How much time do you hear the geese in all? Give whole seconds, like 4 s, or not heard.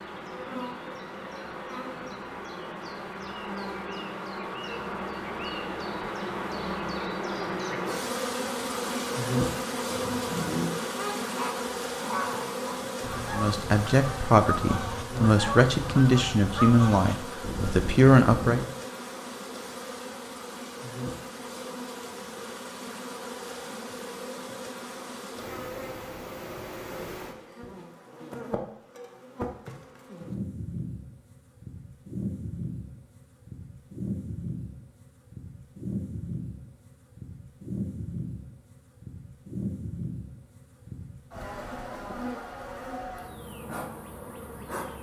9 s.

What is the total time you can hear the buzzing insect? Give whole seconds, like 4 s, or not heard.
45 s.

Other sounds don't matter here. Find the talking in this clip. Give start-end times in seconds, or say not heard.
13.3-18.6.